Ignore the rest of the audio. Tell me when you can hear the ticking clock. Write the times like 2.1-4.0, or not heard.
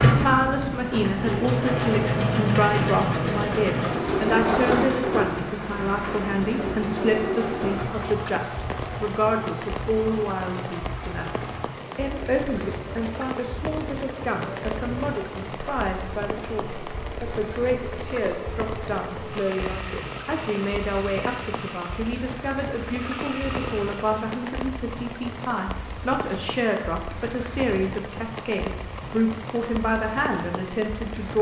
not heard.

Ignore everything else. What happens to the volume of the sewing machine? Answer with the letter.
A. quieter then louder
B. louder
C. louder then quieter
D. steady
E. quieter
E.